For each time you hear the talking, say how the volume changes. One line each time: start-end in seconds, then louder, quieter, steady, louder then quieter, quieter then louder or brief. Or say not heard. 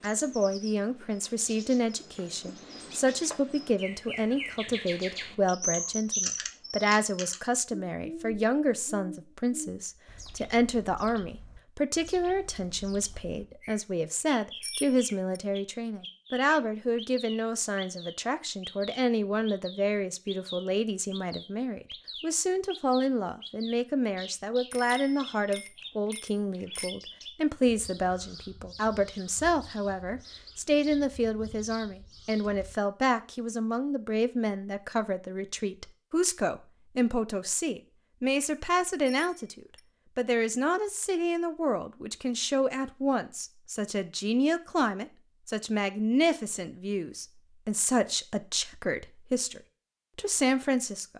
0.0-51.1 steady.